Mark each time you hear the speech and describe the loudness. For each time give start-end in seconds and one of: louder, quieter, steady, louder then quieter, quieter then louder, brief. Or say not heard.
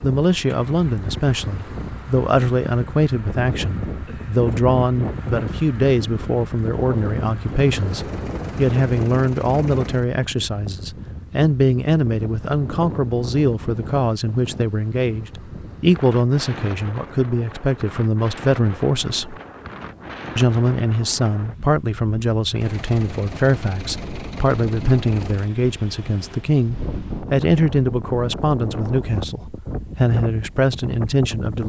0.0-19.4 steady
20.4-31.6 steady.